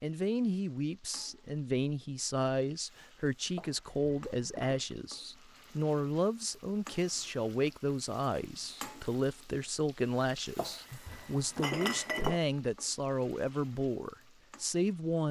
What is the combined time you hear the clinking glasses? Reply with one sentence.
You can hear the clinking glasses for 3 seconds altogether.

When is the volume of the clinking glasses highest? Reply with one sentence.
The volume of the clinking glasses peaks at 12 seconds.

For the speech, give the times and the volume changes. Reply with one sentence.
You can hear the speech from 0.0 to 15.2 s, at a steady volume.